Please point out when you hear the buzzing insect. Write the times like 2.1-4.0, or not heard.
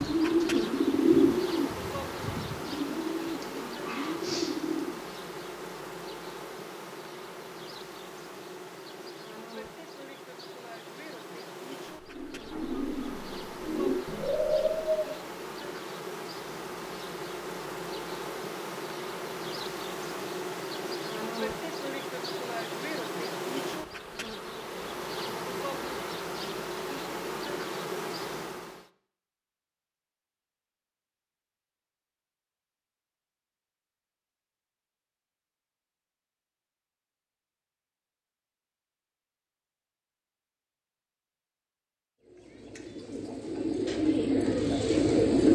0.0-28.9.